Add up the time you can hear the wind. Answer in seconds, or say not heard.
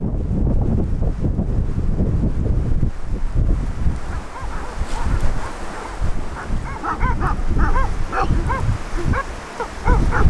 10 s.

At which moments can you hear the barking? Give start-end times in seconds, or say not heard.
4.1-10.2.